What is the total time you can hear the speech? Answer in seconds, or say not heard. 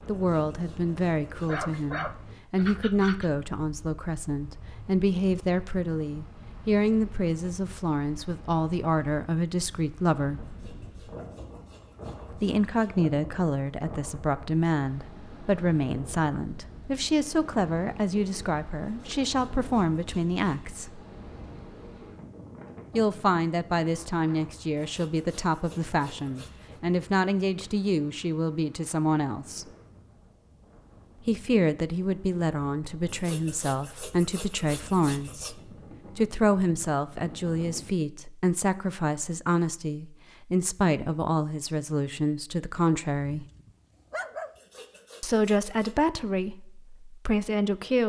40 s.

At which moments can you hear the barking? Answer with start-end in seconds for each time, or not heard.
1.4-3.3, 43.4-44.5.